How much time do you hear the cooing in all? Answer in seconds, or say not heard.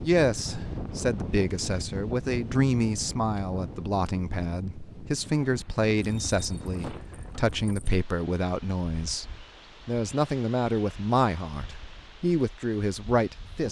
not heard.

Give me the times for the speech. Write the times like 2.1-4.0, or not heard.
0.0-13.6.